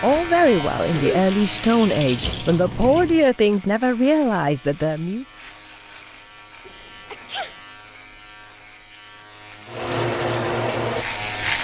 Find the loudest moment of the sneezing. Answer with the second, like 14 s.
1 s.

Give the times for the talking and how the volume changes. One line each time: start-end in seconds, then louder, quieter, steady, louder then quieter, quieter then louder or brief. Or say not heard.
0.0-5.2 steady.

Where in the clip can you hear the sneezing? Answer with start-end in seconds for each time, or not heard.
0.8-1.2, 6.7-7.5.